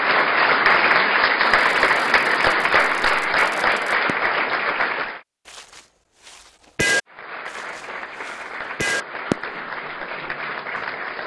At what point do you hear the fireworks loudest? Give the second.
7 s.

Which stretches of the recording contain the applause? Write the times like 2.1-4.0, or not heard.
0.0-5.2, 7.0-11.2.